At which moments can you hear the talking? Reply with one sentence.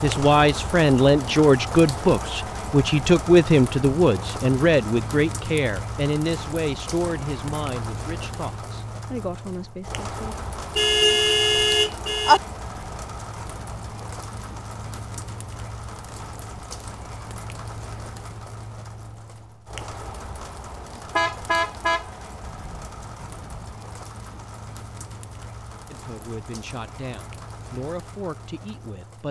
The talking can be heard from 0.0 to 10.3 s and from 25.9 to 29.2 s.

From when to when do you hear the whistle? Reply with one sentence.
The whistle can't be heard in this clip.